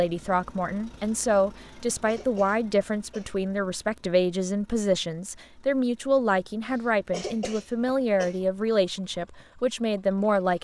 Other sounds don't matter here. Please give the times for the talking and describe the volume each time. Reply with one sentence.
The talking can be heard from 0.0 to 10.5 s, at a steady volume.